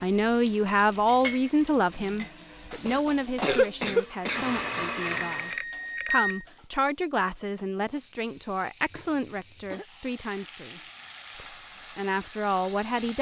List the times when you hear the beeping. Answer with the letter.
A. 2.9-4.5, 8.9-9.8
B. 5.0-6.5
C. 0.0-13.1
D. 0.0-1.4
B.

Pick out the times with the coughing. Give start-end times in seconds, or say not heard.
2.9-4.5, 8.9-9.8.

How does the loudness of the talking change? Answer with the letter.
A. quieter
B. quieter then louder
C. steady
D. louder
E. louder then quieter
A.